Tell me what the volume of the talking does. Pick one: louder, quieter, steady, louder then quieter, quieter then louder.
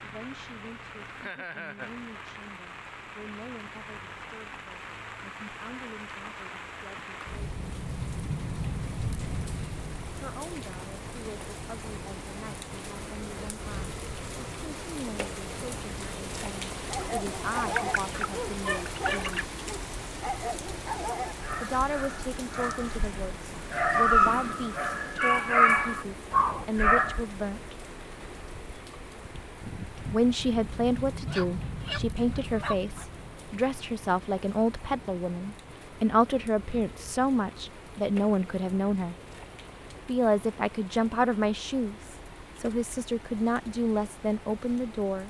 louder.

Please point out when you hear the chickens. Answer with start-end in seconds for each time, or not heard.
16.9-19.4, 31.2-33.0.